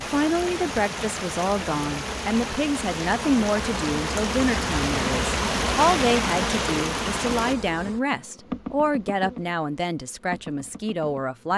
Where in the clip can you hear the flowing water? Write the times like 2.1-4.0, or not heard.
0.0-7.5.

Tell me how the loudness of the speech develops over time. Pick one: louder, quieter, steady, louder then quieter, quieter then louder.
steady.